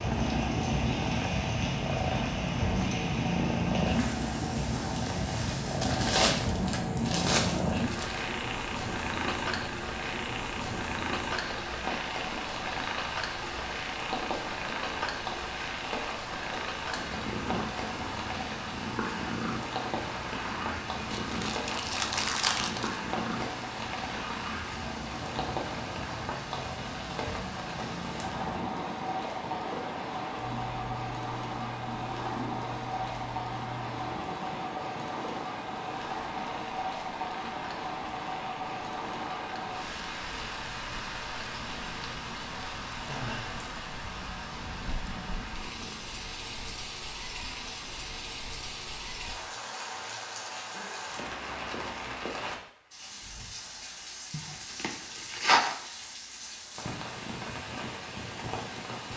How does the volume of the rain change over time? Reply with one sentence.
The volume of the rain stays about the same.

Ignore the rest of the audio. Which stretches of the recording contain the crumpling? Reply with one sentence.
The crumpling can be heard from 5.8 to 8.2 s, from 21.1 to 23.0 s and from 54.3 to 55.8 s.